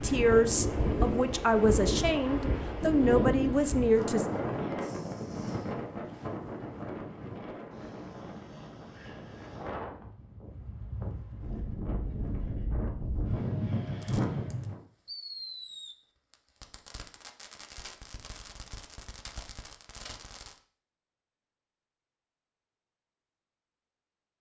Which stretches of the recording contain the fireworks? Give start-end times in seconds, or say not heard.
14.0-20.6.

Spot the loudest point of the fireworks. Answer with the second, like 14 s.
15 s.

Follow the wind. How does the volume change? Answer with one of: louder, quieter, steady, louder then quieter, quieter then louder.
quieter then louder.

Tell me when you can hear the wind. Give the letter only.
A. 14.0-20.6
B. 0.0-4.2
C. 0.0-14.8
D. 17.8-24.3
C.